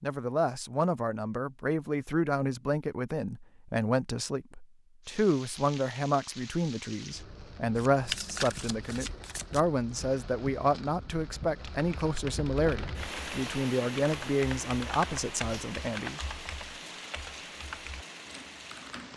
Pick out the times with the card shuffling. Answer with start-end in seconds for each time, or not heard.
7.8-9.6.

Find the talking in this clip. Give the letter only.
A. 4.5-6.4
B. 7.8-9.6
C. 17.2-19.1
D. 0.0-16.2
D.